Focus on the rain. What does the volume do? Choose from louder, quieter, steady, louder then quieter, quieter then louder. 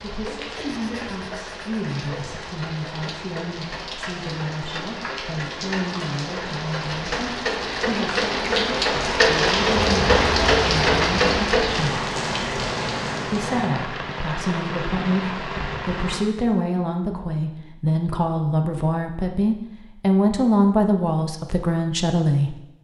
louder then quieter.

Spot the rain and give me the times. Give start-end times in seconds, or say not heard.
0.0-16.2.